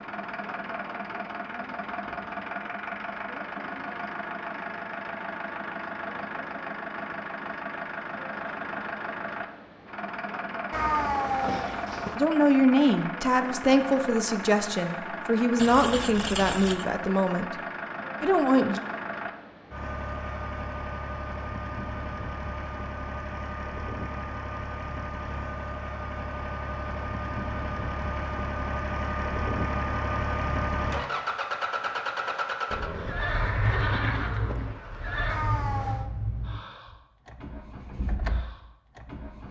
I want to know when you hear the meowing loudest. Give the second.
11 s.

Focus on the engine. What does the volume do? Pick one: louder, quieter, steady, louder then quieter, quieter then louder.
steady.